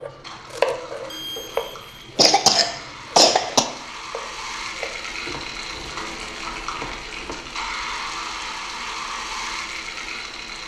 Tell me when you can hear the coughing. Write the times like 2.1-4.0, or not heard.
2.1-3.6.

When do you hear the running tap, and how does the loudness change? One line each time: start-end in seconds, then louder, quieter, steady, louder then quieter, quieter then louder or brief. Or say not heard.
0.0-10.6 louder.